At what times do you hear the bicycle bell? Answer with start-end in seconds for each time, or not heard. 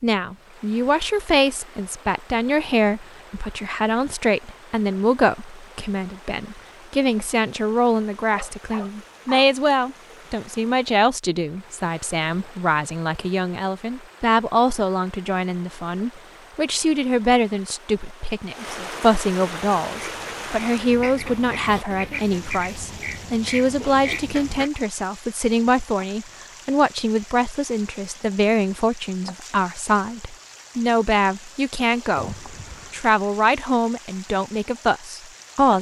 32.1-33.0.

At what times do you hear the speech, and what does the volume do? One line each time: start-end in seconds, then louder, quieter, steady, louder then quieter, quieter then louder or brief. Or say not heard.
0.0-35.7 steady.